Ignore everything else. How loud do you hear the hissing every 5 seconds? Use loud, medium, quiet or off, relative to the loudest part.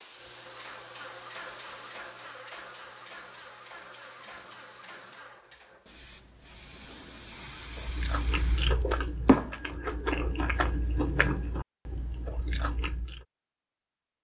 medium, loud, off.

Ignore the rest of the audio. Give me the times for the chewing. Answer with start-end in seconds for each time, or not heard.
7.6-13.2.